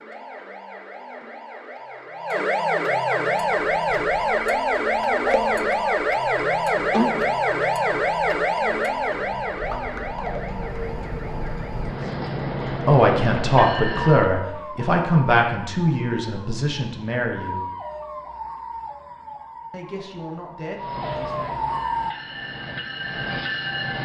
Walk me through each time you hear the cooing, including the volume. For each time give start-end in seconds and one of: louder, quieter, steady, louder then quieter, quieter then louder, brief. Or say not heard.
not heard.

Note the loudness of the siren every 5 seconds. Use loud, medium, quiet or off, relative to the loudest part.
loud, loud, quiet, quiet, medium.